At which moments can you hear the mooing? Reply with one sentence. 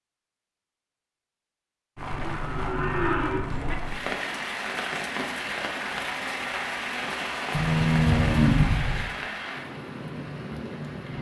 You can hear the mooing from 2.2 to 3.8 s and from 7.5 to 9.1 s.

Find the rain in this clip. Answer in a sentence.
The rain can be heard from 1.9 to 11.1 s.